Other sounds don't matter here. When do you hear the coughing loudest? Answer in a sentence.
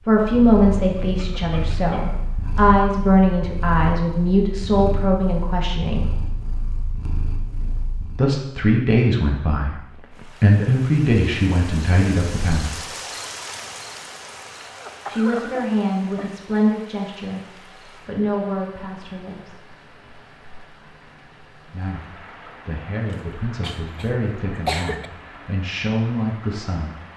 The loudest moment of the coughing is at 25 seconds.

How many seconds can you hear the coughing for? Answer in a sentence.
The coughing can be heard for 5 seconds in total.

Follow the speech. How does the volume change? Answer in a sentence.
The volume of the speech goes down.